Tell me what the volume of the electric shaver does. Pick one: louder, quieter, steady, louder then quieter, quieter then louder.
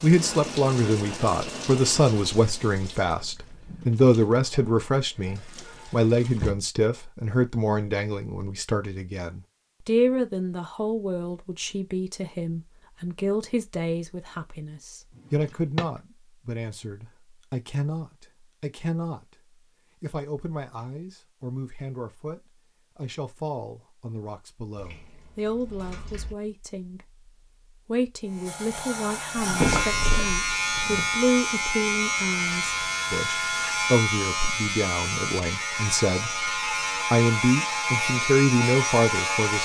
steady.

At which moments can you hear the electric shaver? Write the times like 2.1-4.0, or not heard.
28.2-39.6.